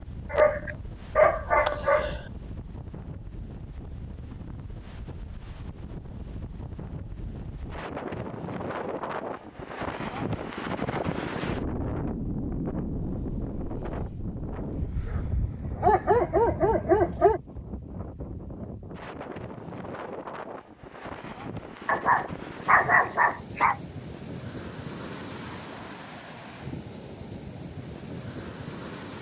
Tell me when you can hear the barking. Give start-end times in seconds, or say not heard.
0.3-2.2, 14.7-17.4, 21.9-23.8.